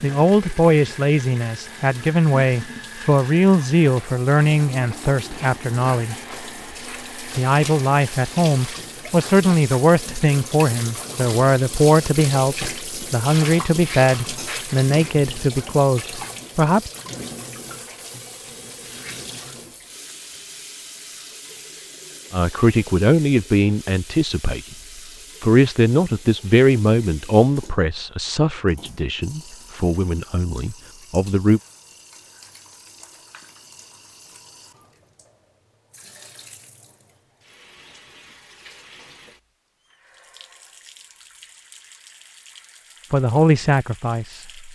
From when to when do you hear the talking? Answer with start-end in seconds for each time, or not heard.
0.0-6.2, 7.3-16.9, 22.3-24.8, 25.4-31.6, 43.1-44.5.